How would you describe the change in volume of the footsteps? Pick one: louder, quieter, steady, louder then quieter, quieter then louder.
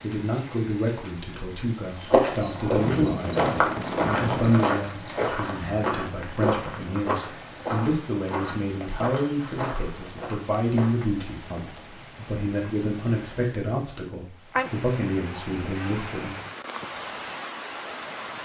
quieter.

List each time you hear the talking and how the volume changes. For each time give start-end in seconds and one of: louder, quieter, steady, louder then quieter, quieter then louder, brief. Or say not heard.
0.0-16.4 steady.